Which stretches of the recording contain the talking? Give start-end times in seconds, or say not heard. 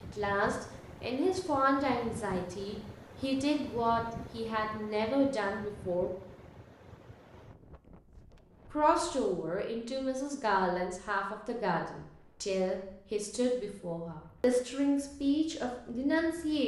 0.0-6.1, 8.7-16.6.